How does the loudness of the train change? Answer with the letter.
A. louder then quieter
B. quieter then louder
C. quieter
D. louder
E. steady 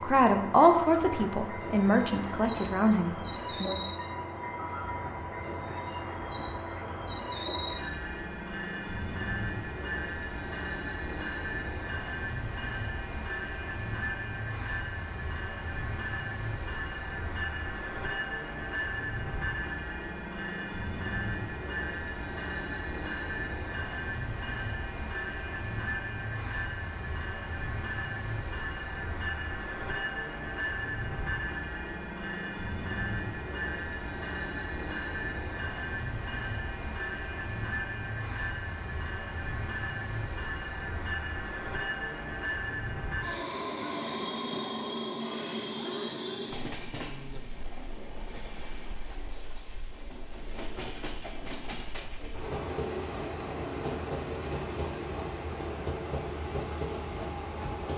E.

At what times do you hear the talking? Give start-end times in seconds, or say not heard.
0.0-3.8.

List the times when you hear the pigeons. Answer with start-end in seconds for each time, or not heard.
not heard.